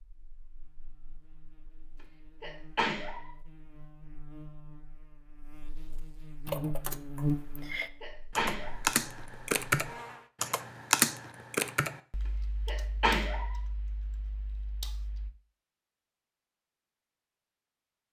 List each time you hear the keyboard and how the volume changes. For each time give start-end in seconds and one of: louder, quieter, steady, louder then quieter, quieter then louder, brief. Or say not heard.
6.5-15.3 louder then quieter.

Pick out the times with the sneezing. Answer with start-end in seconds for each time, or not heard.
2.4-3.3, 8.0-8.8, 12.7-13.6.